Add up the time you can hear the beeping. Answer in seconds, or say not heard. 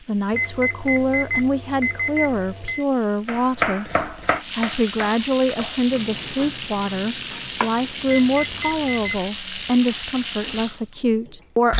4 s.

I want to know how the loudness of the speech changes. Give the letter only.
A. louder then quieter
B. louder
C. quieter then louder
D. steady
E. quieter
D.